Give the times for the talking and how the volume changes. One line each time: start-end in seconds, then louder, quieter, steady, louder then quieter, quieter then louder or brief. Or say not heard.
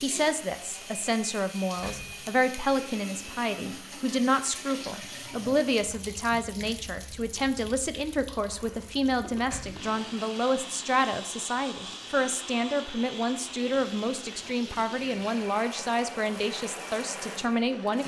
0.0-18.0 steady.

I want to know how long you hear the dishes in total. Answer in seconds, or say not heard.
not heard.